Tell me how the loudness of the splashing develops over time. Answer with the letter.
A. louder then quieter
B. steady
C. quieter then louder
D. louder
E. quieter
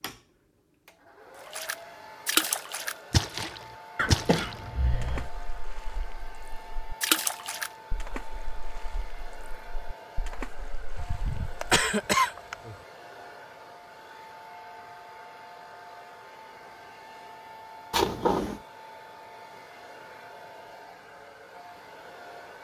E.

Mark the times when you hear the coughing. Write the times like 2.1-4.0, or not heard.
4.0-5.3, 10.9-12.8, 17.9-18.6.